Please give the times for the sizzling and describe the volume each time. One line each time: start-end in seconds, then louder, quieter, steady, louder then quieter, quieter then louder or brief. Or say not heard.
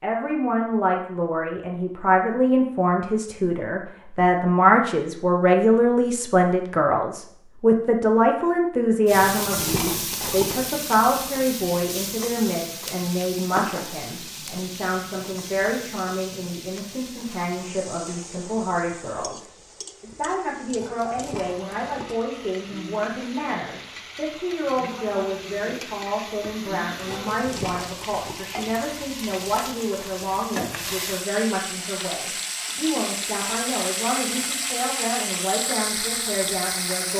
9.1-37.1 quieter then louder.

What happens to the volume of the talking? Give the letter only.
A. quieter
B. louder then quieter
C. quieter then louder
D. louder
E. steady
A.